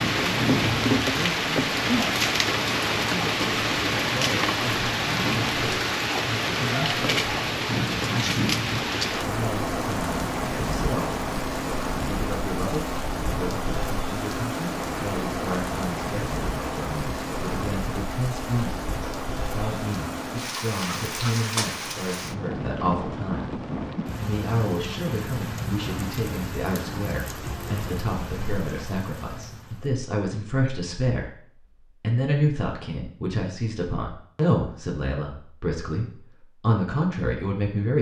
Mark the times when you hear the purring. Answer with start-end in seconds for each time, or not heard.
not heard.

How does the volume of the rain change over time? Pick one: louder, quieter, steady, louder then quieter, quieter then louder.
quieter.